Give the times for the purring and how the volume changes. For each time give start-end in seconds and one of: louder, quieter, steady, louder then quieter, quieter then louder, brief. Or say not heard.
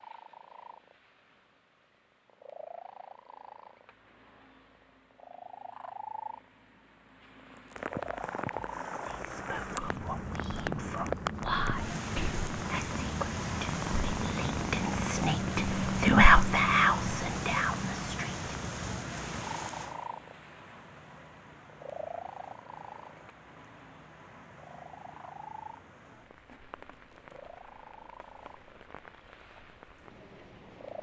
0.0-30.9 louder then quieter.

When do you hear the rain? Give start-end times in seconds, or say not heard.
7.8-30.9.